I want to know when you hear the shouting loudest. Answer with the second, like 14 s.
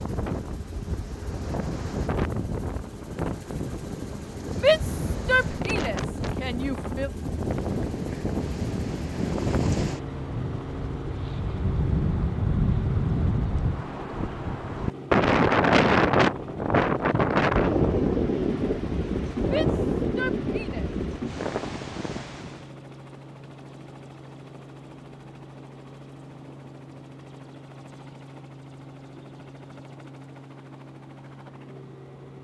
5 s.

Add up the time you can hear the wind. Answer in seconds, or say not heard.
23 s.